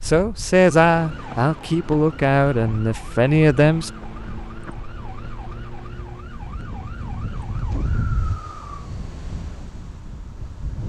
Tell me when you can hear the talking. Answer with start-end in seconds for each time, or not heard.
0.1-3.9.